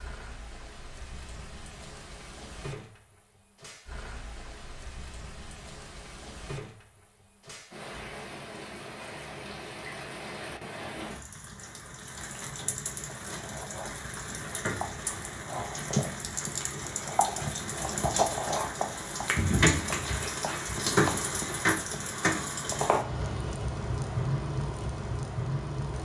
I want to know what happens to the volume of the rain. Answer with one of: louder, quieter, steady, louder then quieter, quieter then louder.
louder.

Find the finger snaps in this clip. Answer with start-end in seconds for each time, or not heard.
19.2-20.8.